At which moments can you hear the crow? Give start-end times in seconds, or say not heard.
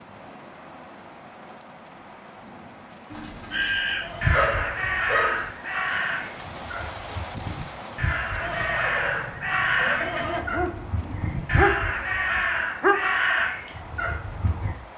3.5-14.7.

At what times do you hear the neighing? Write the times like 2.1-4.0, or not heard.
4.0-5.0, 8.4-10.4.